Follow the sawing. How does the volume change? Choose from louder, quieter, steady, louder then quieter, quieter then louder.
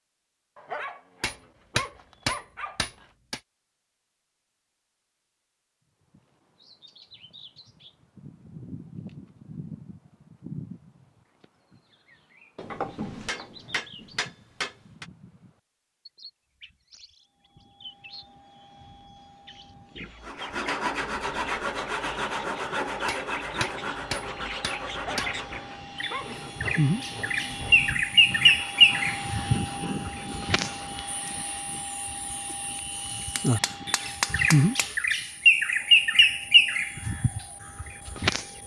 quieter.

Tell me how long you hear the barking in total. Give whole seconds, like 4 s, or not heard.
4 s.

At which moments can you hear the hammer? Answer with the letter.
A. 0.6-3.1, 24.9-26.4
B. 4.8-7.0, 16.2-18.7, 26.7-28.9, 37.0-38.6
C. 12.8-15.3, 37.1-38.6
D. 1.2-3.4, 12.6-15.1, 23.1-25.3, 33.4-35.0
D.